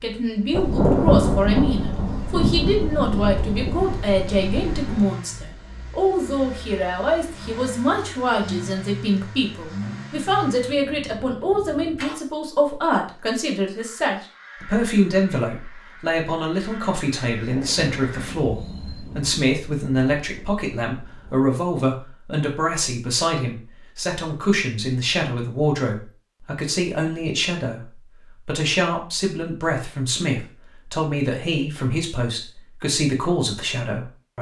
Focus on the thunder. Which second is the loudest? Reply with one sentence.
The loudest moment of the thunder is at 1 second.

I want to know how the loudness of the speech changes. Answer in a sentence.
The loudness of the speech stays about the same.